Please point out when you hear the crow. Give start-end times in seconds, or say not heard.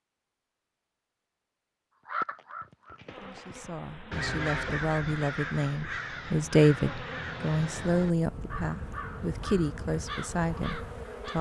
2.0-11.3.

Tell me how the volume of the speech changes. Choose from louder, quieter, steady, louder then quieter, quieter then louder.
louder then quieter.